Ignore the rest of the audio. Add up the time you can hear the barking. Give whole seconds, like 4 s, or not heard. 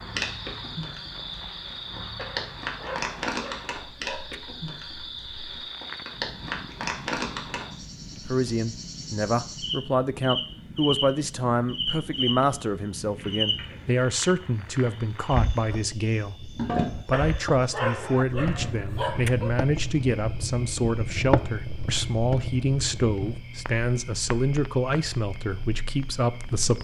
5 s.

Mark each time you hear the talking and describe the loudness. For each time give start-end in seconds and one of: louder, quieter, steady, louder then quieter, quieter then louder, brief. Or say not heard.
8.2-26.7 steady.